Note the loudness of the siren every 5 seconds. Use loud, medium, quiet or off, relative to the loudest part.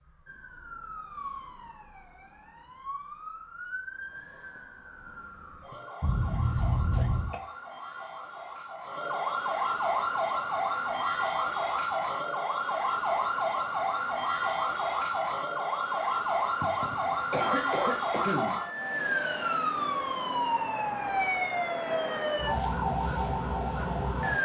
quiet, medium, loud, loud, loud.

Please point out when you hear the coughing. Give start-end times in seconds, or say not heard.
6.0-7.4, 16.6-18.6.